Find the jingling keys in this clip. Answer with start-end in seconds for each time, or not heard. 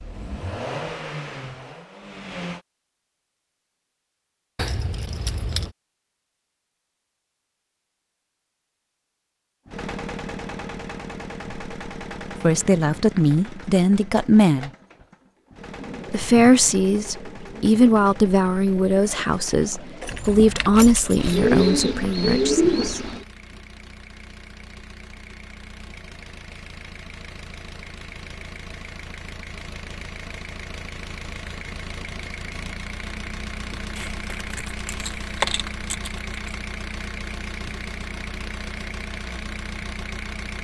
4.5-5.8, 20.0-21.4, 34.0-36.5.